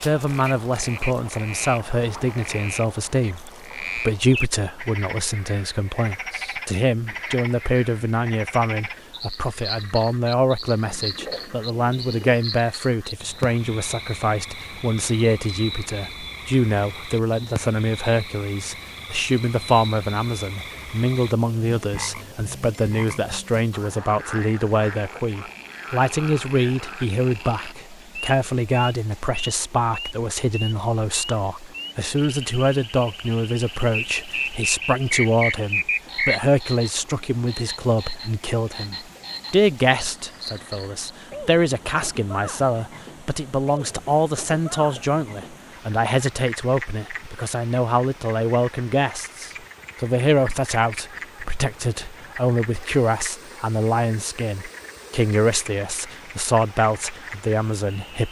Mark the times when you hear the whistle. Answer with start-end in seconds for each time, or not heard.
34.1-36.4.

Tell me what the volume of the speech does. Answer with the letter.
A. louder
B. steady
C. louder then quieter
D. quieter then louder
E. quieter
B.